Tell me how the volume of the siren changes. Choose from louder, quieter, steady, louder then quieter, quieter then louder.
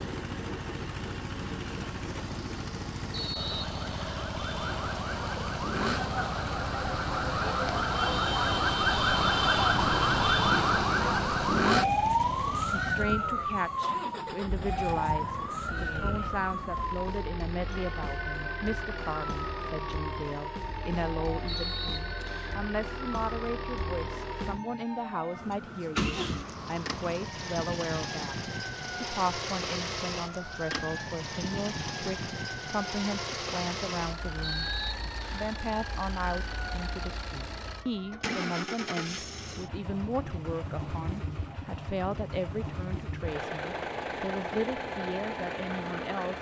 quieter.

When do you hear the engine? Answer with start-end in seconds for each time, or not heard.
0.0-46.3.